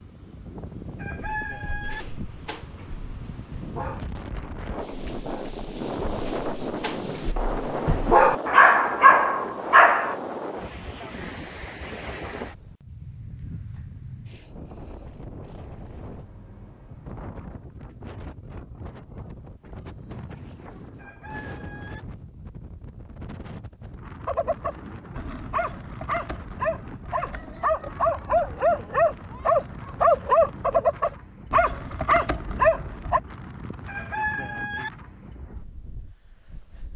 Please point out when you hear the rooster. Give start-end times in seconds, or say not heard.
0.8-2.0, 20.8-22.0, 33.6-34.9.